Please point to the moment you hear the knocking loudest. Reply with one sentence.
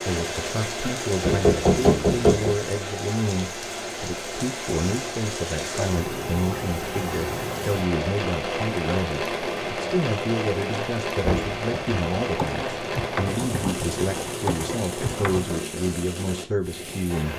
The loudest moment of the knocking is at 2 seconds.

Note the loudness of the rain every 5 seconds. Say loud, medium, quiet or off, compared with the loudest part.
loud, loud, loud, medium.